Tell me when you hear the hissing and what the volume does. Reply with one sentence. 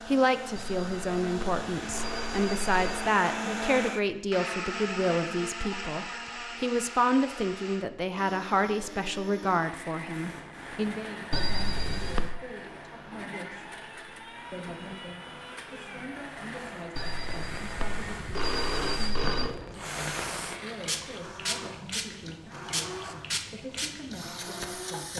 You can hear the hissing from 10.1 to 25.1 s, getting louder.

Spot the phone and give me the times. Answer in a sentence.
You can hear the phone from 0.6 to 3.1 s, from 11.3 to 12.3 s and from 16.9 to 19.6 s.